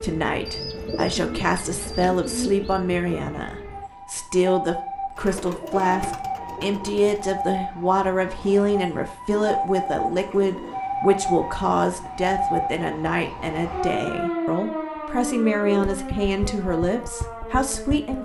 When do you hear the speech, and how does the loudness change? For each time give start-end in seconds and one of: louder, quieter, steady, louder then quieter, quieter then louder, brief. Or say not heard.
0.0-18.1 steady.